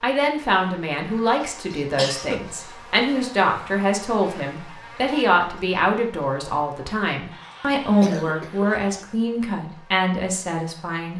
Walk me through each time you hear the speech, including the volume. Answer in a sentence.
You can hear the speech from 0.0 to 11.1 s, at a steady volume.